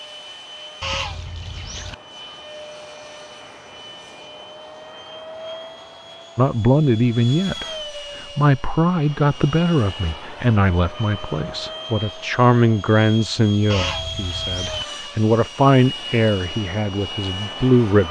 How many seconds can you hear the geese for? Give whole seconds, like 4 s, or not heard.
2 s.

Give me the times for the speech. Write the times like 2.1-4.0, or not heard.
6.3-18.0.